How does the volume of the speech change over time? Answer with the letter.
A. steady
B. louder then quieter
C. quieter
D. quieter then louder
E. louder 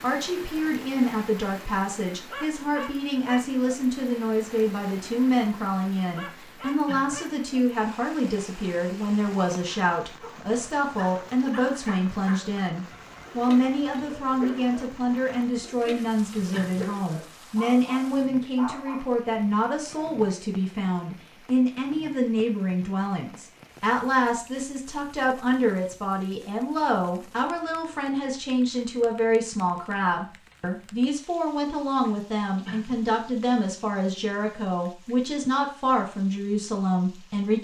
A.